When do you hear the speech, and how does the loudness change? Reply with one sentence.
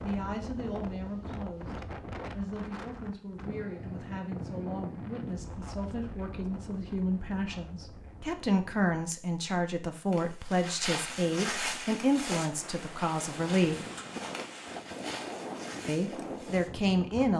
The speech can be heard from 0.0 to 13.8 s, getting louder; and briefly from 15.8 to 17.3 s.